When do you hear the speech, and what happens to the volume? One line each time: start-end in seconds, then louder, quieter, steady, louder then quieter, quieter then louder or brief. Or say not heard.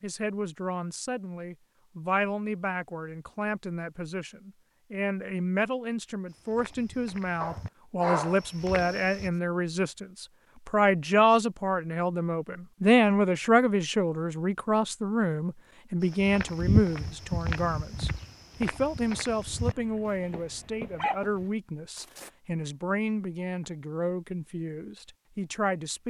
0.0-26.0 louder then quieter.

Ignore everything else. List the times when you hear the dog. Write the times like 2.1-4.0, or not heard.
7.4-9.0, 19.6-21.4.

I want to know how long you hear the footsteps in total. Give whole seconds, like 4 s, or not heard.
9 s.